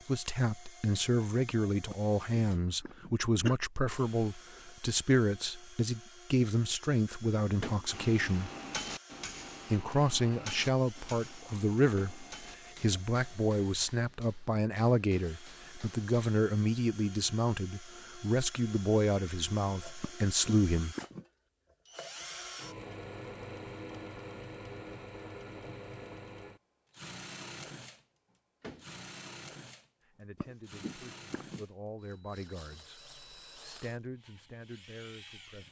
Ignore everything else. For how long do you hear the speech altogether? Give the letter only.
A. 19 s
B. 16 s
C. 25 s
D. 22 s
C.